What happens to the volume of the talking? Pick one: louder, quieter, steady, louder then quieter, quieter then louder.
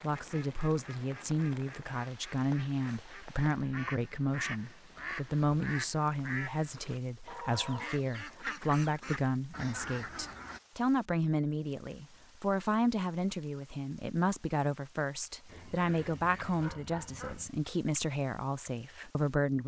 steady.